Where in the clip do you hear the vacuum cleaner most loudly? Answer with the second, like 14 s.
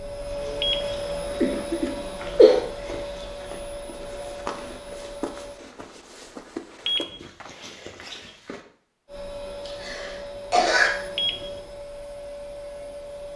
1 s.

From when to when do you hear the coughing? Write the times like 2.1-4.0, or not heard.
1.4-2.6, 9.7-10.9.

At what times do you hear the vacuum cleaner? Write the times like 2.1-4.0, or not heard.
0.0-5.6, 9.1-13.3.